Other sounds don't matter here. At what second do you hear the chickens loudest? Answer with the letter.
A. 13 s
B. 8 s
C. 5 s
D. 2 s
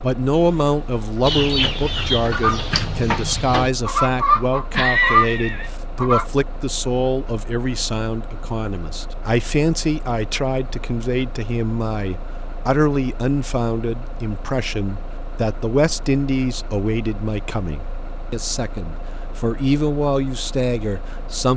C.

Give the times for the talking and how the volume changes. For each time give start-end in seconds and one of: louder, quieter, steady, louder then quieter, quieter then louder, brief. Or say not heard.
0.0-21.5 steady.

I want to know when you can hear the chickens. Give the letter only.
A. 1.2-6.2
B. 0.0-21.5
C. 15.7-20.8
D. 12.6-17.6
A.